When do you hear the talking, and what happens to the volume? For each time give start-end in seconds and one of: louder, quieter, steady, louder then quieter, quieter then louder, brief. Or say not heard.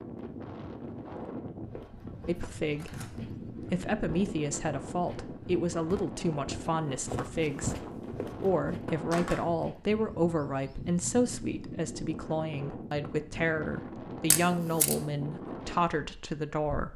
2.2-16.9 steady.